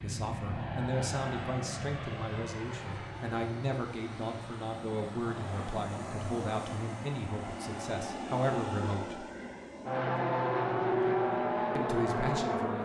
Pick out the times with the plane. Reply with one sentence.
You can hear the plane from 0.0 to 12.7 s.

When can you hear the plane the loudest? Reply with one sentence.
The loudest moment of the plane is at 11 seconds.